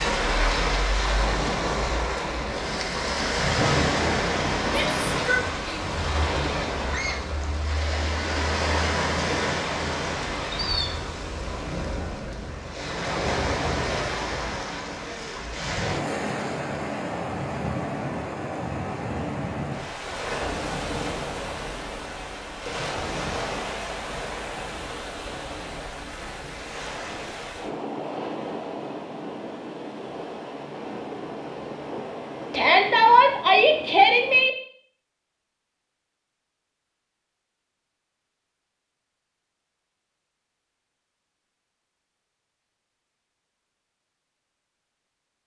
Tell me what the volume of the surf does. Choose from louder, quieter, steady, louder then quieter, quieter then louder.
quieter.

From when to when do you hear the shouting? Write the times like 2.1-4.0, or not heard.
4.7-5.8, 32.5-34.5.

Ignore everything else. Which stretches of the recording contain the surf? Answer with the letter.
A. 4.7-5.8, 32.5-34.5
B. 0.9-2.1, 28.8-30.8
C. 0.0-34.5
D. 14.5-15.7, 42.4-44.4
C.